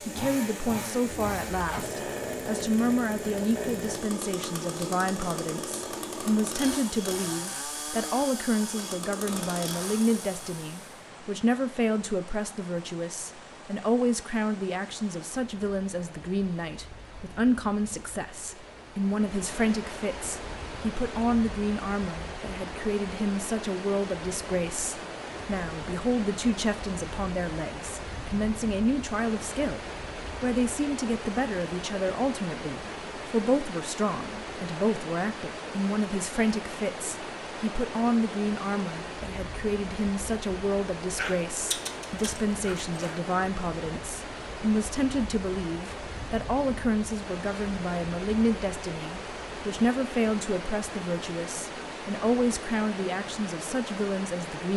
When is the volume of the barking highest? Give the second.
42 s.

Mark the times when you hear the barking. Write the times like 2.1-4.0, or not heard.
41.1-43.2.